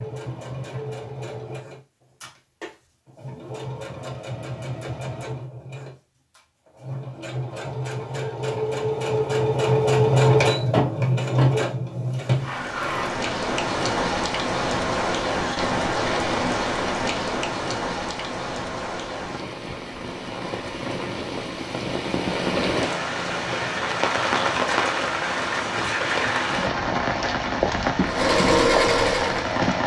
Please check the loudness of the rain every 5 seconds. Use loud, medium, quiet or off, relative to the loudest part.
off, off, loud, loud, loud, loud.